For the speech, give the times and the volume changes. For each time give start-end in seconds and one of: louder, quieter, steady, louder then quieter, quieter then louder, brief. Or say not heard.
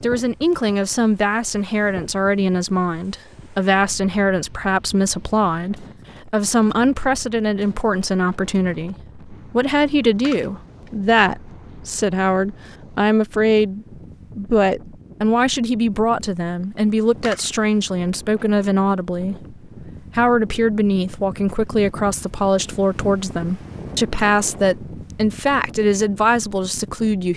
0.0-27.3 steady.